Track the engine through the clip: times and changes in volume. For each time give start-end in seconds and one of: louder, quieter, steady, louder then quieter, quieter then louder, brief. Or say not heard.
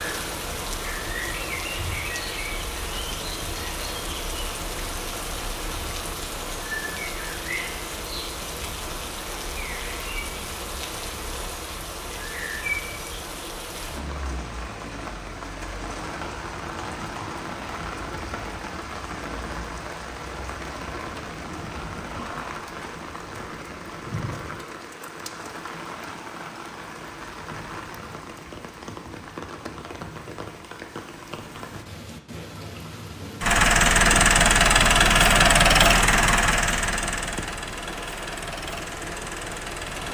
33.4-40.1 quieter.